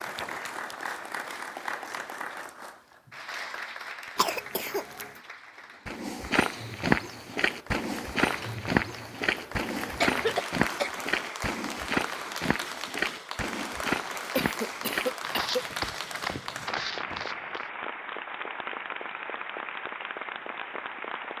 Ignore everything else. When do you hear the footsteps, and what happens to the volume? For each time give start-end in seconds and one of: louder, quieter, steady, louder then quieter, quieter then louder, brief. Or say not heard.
5.8-17.6 quieter.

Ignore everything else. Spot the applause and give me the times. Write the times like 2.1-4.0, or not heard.
0.0-21.3.